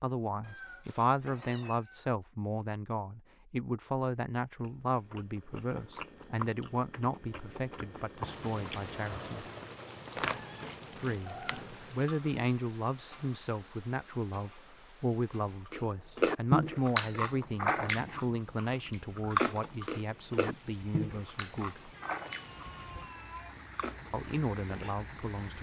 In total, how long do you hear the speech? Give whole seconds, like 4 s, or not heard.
22 s.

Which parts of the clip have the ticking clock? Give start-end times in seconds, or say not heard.
not heard.